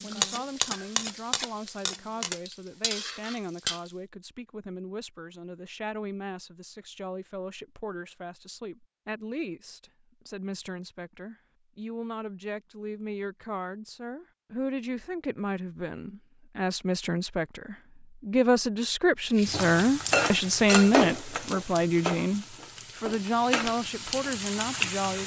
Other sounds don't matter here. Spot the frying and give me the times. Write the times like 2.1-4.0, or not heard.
0.0-4.0, 19.4-25.2.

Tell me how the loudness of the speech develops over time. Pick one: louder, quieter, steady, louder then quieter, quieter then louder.
louder.